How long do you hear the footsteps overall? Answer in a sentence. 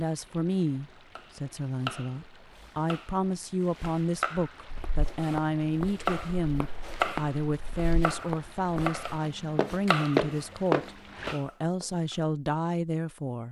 You can hear the footsteps for 7 seconds altogether.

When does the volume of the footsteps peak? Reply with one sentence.
The volume of the footsteps peaks at 10 seconds.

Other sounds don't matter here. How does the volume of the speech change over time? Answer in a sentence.
The loudness of the speech stays about the same.